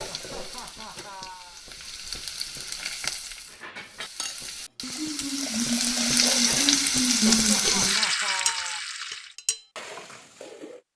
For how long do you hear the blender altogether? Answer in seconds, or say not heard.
not heard.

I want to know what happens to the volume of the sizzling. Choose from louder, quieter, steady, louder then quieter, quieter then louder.
louder.